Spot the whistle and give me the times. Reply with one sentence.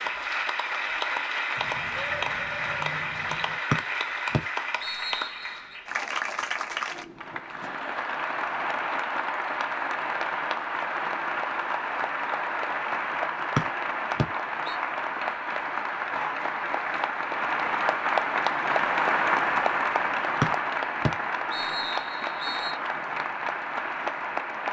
You can hear the whistle from 3.7 to 5.5 s, from 13.6 to 14.8 s and from 20.4 to 22.8 s.